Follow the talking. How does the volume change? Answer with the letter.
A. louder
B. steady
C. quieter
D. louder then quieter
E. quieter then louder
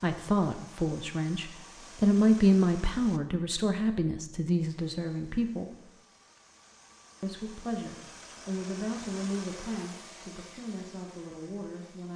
C.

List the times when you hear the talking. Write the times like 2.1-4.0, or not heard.
0.0-5.8, 7.2-12.1.